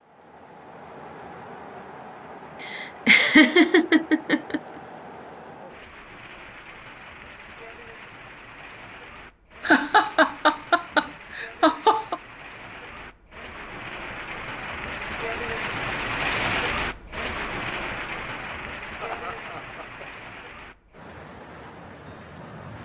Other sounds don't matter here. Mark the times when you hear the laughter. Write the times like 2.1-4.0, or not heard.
2.6-4.6, 9.6-12.2, 19.0-20.1.